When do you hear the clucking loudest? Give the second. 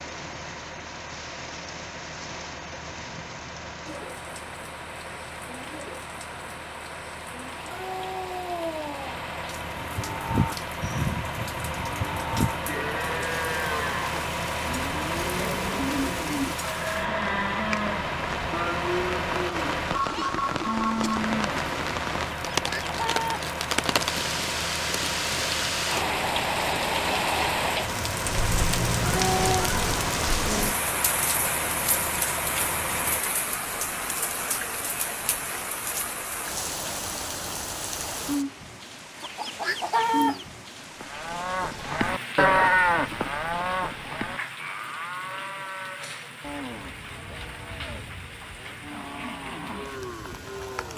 40 s.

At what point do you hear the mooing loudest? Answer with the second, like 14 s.
43 s.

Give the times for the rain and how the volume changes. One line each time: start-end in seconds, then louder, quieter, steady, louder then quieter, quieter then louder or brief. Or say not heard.
0.0-50.9 louder then quieter.